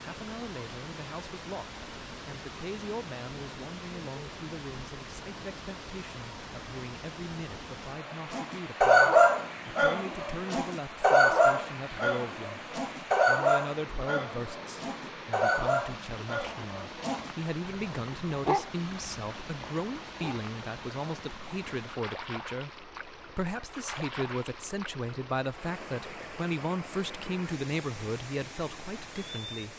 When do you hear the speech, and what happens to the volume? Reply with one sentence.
You can hear the speech from 0.0 to 29.7 s, getting louder.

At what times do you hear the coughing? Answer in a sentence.
You can't hear the coughing here.